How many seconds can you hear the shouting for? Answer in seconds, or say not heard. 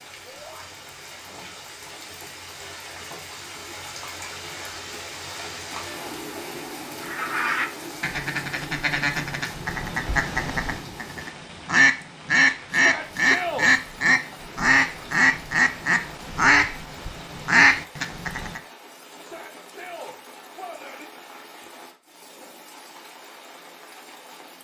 3 s.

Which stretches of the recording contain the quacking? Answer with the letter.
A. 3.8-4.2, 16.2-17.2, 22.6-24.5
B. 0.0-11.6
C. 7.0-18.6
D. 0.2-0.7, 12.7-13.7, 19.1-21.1
C.